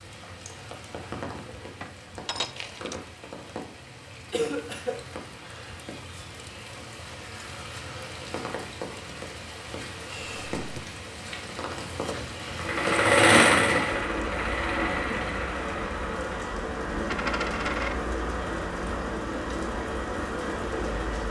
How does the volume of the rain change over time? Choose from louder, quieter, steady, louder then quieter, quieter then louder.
louder.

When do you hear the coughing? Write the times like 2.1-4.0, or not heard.
4.3-5.0.